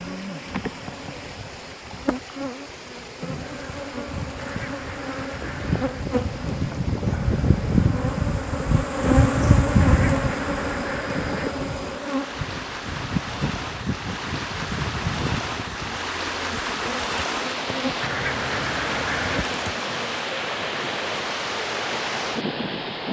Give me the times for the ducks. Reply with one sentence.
The ducks can be heard from 4.3 to 6.0 s, from 9.8 to 11.6 s and from 18.0 to 19.6 s.